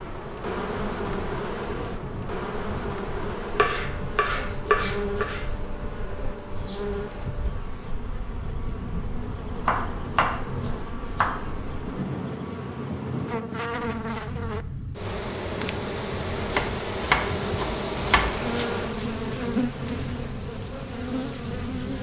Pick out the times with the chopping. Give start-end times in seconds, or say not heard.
3.5-5.5, 8.9-11.3, 16.4-18.4.